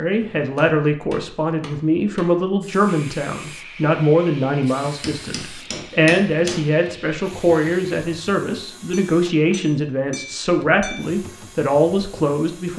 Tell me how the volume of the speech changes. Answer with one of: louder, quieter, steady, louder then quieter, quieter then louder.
steady.